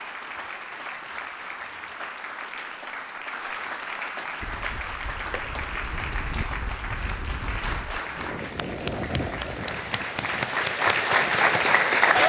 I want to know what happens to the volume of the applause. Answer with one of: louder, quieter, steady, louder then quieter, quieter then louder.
louder.